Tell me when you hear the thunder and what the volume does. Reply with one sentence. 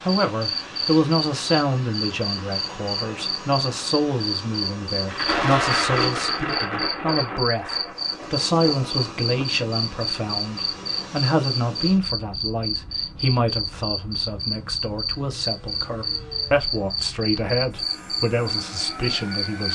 The thunder can be heard from 5.0 to 9.5 s, getting quieter.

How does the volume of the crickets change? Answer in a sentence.
The volume of the crickets stays about the same.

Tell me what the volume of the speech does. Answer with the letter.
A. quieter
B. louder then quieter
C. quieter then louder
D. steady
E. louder
D.